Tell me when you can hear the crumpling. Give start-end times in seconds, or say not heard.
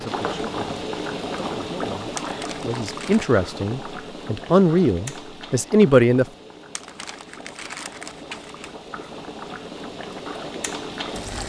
2.1-3.2, 6.8-8.8.